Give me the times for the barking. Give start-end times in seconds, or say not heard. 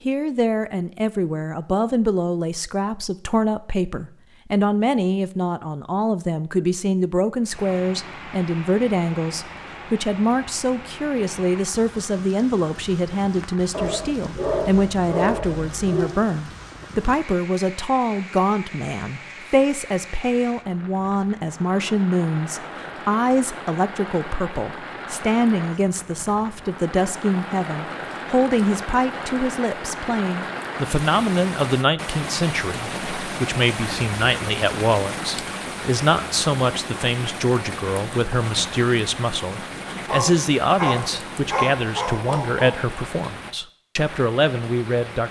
13.7-16.1, 40.0-42.8.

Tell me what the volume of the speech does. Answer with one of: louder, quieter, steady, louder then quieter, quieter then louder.
steady.